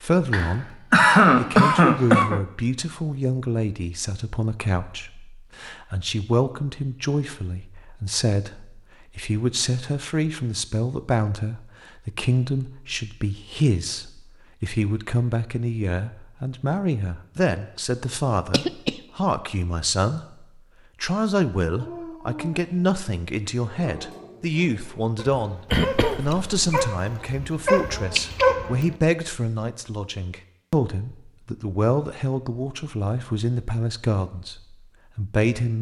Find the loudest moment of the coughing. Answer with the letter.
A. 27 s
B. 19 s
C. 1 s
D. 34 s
C.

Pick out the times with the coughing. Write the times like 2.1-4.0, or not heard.
0.3-2.4, 18.5-18.9, 25.7-26.9.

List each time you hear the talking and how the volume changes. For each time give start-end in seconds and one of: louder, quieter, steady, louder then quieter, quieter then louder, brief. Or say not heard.
0.0-35.7 steady.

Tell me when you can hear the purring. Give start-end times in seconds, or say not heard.
not heard.